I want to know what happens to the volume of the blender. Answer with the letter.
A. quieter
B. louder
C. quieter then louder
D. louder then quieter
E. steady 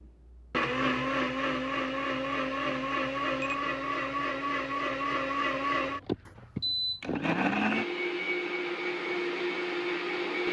E.